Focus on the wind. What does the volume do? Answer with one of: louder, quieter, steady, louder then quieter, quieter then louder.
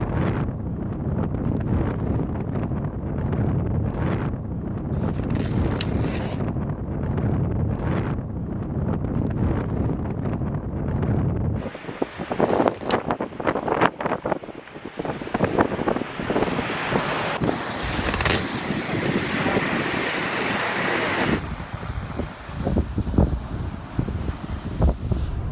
steady.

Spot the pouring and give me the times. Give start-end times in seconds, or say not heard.
not heard.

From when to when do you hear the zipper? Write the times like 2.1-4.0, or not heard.
4.9-6.4, 12.0-13.1, 17.8-18.4.